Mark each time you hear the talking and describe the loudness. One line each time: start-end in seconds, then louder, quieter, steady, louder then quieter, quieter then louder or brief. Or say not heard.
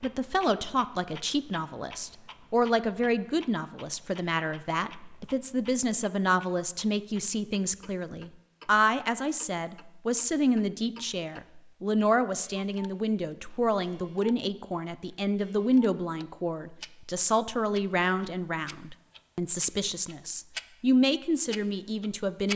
0.0-22.5 steady.